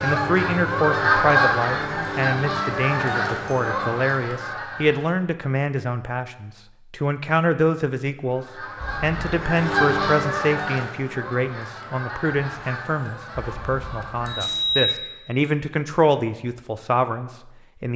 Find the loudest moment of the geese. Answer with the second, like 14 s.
1 s.